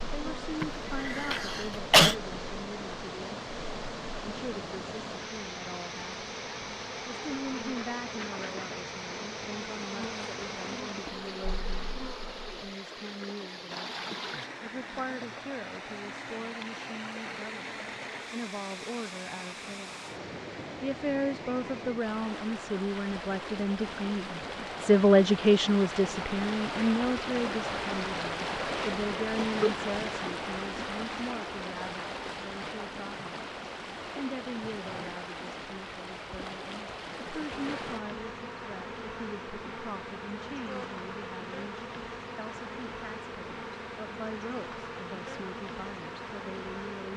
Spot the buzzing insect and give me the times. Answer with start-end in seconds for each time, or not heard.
0.0-12.7, 37.4-47.1.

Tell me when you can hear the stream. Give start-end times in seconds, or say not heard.
0.0-38.0.